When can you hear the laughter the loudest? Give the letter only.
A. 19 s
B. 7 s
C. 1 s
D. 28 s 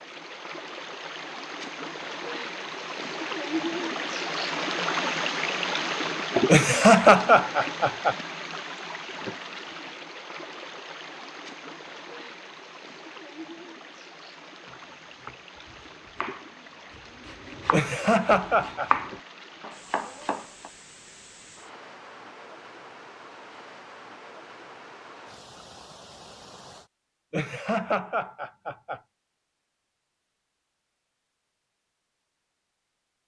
B.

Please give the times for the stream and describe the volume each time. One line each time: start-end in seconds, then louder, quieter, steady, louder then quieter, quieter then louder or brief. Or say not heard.
0.0-26.9 quieter.